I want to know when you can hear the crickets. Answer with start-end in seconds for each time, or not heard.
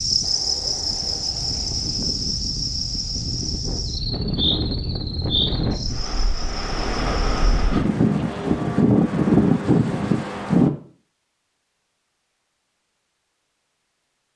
0.0-7.8.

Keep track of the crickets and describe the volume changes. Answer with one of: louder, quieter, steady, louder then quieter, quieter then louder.
quieter.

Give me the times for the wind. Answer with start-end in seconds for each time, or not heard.
0.0-10.7.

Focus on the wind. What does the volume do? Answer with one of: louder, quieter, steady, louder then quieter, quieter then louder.
louder.